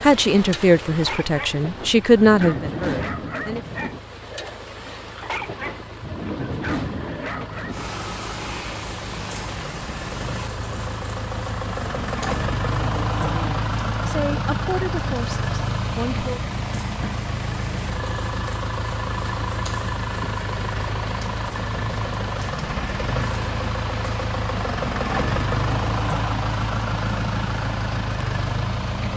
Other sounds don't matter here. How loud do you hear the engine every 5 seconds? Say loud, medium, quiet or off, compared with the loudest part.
quiet, quiet, loud, loud, loud, loud.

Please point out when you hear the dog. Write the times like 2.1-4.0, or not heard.
0.9-7.8.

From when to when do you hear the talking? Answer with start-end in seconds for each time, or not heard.
0.0-3.6, 12.8-16.4.